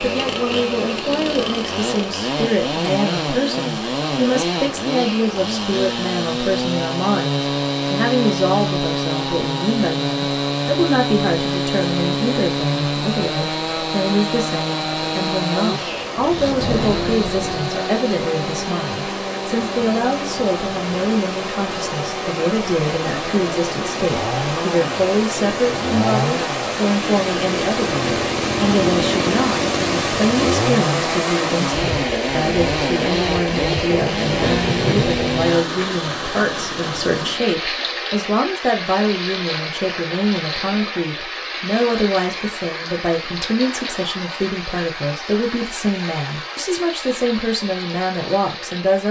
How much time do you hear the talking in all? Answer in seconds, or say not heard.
49 s.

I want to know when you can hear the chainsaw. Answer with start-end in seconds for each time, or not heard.
0.0-35.6.